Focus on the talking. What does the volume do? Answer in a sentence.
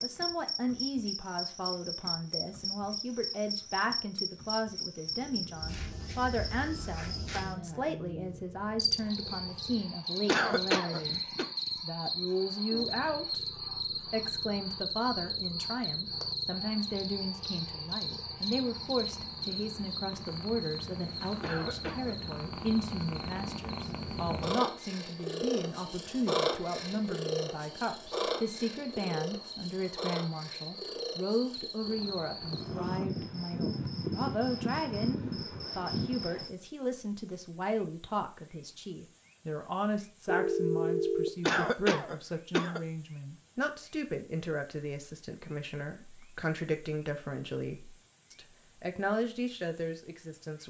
The loudness of the talking stays about the same.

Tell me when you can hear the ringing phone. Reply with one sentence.
The ringing phone can be heard from 40.2 to 41.3 s.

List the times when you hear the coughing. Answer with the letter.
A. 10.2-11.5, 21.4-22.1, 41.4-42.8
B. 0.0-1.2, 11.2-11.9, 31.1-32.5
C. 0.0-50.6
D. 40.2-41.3
A.